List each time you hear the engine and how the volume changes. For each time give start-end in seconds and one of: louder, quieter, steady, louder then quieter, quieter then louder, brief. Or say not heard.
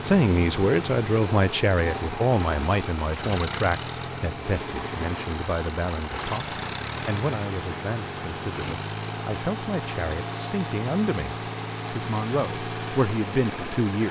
0.0-14.0 steady.